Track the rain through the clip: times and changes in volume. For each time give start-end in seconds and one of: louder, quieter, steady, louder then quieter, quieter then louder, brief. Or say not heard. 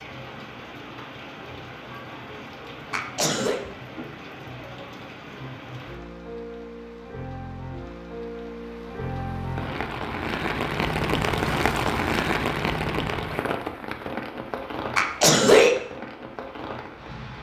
0.0-17.3 louder then quieter.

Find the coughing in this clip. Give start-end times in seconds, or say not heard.
2.9-3.6, 14.9-15.8.